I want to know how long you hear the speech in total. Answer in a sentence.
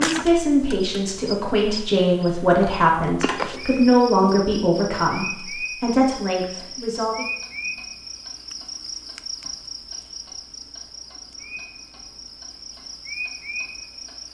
You can hear the speech for 7 seconds altogether.